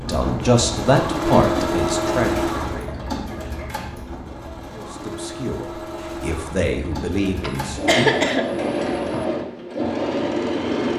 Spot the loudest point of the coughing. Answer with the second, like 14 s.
8 s.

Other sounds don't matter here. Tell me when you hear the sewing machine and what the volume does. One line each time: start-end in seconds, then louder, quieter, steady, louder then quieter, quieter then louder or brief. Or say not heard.
0.0-10.9 quieter then louder.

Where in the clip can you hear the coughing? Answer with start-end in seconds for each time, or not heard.
1.4-1.8, 7.4-9.1.